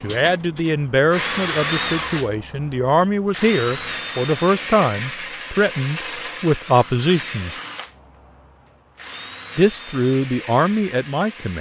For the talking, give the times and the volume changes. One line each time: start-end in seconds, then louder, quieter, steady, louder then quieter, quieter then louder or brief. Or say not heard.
0.0-7.5 steady
9.6-11.5 brief.